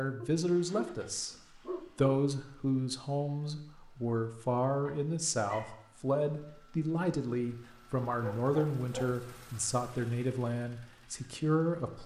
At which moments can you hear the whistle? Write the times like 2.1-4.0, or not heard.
not heard.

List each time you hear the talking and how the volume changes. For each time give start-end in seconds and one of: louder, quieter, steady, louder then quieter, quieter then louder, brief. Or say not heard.
0.0-12.0 steady.